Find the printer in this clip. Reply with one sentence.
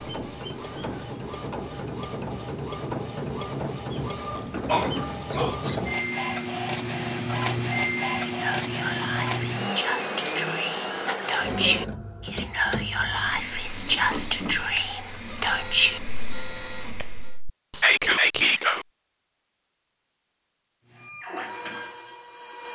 The printer can be heard from 0.0 to 17.4 s and from 20.9 to 22.7 s.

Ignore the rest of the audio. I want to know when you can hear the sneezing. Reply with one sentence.
The sneezing can be heard from 4.7 to 5.5 s.